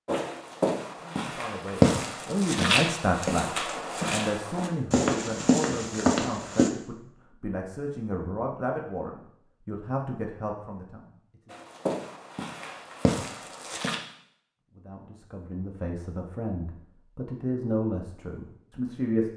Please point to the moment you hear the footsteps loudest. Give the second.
2 s.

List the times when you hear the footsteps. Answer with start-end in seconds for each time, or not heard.
0.1-6.7, 11.5-14.0.